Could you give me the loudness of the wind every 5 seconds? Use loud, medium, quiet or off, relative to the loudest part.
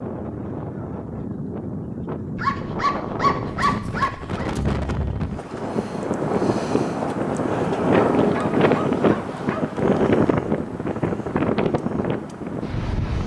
medium, loud, loud.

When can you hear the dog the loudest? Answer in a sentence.
The volume of the dog peaks at 3 seconds.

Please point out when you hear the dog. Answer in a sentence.
The dog can be heard from 2.4 to 4.5 s and from 7.9 to 9.8 s.